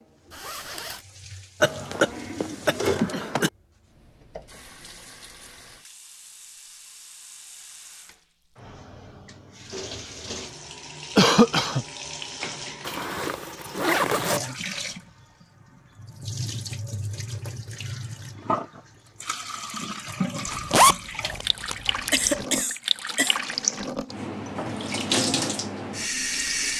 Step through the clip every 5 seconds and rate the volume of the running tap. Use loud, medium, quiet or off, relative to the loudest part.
quiet, quiet, medium, medium, loud, loud.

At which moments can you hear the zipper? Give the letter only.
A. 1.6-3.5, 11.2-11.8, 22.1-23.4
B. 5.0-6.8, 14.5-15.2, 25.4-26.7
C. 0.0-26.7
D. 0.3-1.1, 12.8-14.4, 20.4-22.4
D.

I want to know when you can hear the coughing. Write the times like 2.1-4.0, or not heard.
1.6-3.5, 11.2-11.8, 22.1-23.4.